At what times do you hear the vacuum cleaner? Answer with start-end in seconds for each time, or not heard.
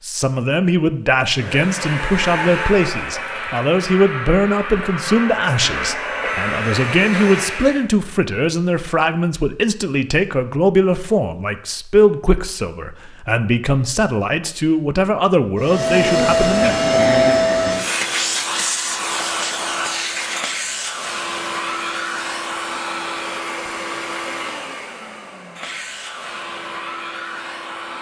1.3-7.9, 15.6-27.9.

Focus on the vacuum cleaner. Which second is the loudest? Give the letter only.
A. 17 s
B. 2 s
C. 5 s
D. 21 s
A.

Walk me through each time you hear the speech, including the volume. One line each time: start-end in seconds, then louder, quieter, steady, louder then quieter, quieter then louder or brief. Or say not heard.
0.0-16.9 steady.